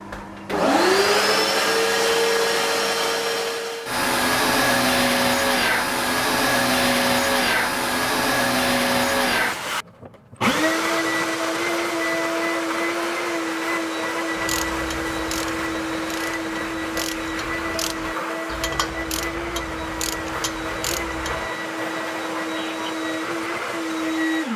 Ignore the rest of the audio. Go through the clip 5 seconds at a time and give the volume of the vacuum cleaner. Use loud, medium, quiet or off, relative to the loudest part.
loud, loud, loud, medium, medium.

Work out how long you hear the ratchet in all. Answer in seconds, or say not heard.
7 s.